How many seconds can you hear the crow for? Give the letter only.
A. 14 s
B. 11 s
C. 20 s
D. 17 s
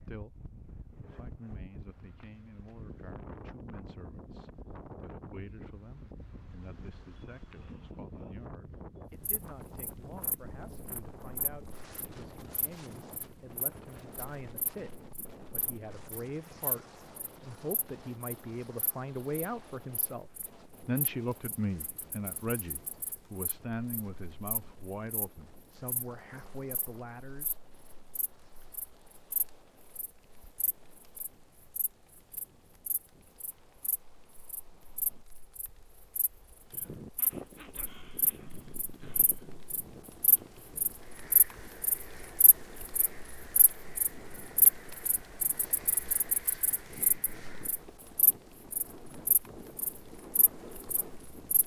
B.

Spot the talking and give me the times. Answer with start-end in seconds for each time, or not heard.
0.0-27.6.